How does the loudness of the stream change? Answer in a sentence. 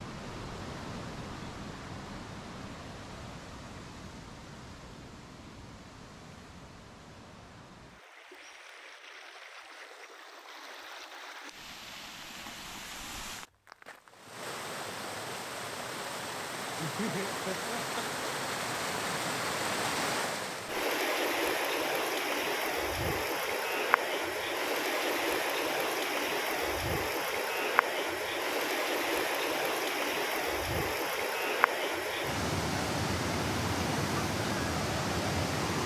The loudness of the stream goes up.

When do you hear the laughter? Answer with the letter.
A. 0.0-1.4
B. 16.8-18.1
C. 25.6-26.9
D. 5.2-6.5
B.